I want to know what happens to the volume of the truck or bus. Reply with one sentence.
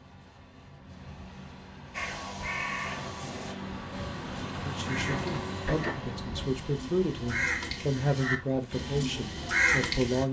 The volume of the truck or bus goes up, then down.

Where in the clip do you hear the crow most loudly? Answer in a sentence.
The loudest moment of the crow is at 10 seconds.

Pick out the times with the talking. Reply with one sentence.
You can hear the talking from 4.7 to 10.2 s.